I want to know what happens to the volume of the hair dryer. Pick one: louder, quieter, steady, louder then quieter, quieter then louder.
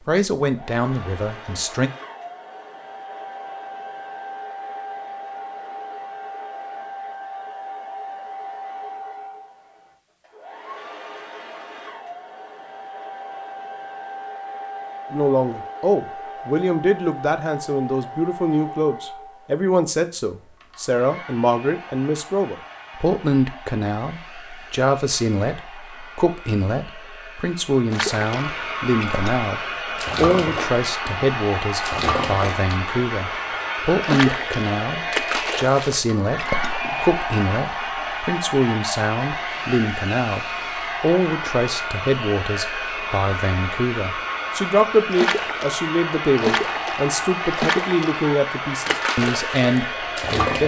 louder.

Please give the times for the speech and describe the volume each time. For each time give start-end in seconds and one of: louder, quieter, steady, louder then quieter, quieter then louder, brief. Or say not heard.
0.1-1.9 brief
15.1-50.6 steady.